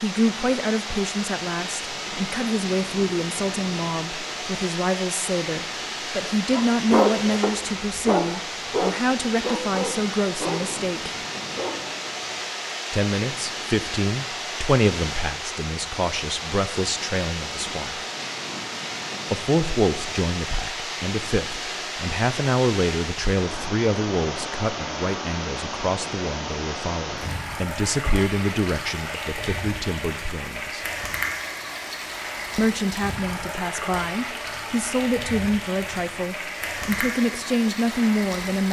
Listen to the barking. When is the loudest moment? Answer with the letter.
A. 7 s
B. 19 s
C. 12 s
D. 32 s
A.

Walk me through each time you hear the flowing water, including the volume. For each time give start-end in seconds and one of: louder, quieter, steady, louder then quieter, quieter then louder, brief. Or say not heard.
0.0-38.6 steady.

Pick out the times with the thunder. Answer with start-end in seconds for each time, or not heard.
not heard.